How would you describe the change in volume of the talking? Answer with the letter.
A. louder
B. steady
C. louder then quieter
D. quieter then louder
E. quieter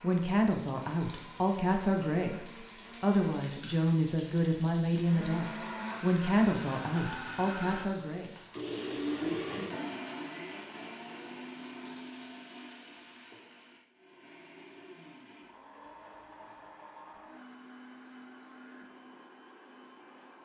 B.